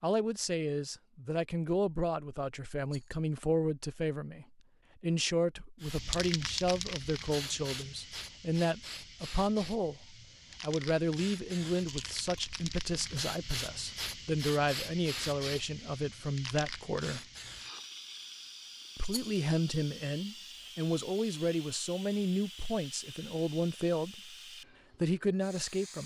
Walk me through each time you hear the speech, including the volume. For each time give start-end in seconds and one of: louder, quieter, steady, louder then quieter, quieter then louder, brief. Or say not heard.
0.0-17.2 steady
18.9-24.4 steady
25.0-26.0 brief.